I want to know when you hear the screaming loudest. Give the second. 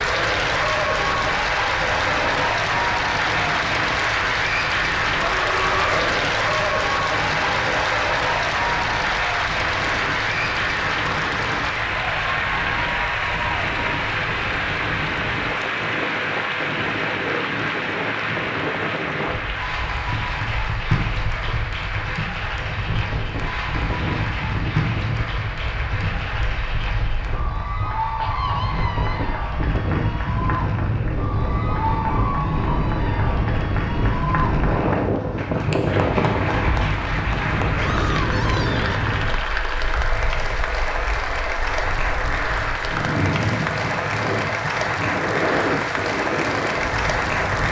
6 s.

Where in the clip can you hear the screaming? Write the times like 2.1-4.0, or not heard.
5.1-6.2, 28.1-29.4, 37.8-38.9.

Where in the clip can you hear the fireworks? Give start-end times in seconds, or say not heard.
not heard.